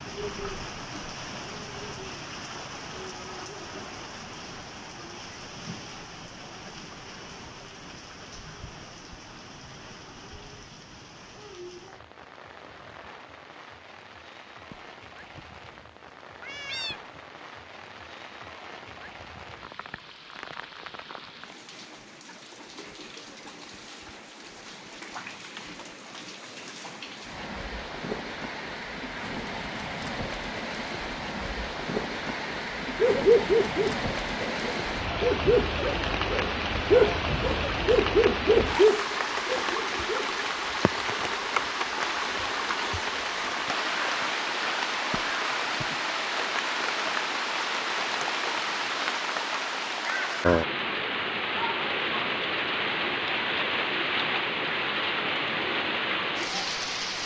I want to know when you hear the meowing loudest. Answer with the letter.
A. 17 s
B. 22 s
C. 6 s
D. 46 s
A.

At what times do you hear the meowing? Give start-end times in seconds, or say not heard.
14.7-15.5, 16.4-17.2, 45.1-46.0.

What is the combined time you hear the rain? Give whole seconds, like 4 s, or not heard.
57 s.